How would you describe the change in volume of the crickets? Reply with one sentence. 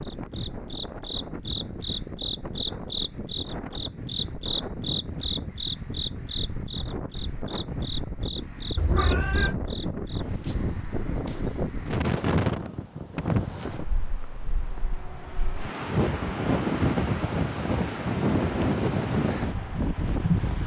The volume of the crickets goes down.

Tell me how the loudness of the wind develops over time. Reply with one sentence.
The loudness of the wind goes up.